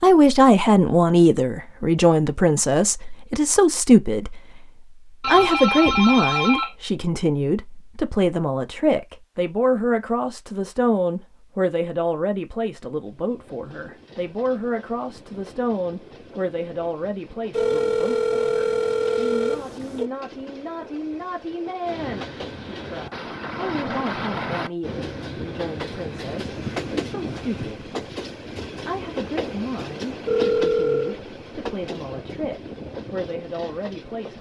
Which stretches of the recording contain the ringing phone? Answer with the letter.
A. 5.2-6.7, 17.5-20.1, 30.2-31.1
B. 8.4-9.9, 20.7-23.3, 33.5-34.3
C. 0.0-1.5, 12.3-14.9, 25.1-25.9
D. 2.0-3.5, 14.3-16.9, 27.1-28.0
A.